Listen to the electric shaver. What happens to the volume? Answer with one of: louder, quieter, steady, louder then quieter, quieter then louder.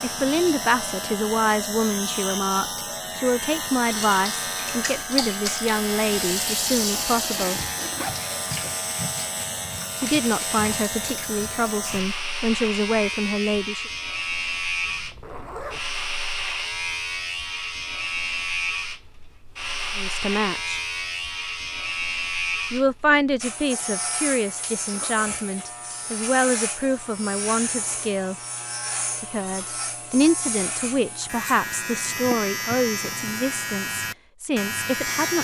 steady.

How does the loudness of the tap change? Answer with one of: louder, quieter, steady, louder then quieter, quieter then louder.
quieter.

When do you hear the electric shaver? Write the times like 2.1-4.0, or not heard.
0.0-35.3.